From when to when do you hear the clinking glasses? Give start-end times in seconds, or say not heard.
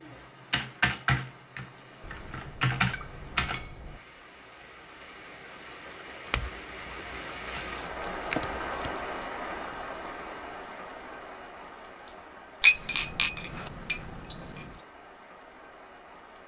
2.0-4.0, 6.3-8.9, 12.6-14.8.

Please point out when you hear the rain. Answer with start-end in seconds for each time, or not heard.
0.0-16.4.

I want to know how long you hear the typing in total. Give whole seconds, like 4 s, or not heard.
3 s.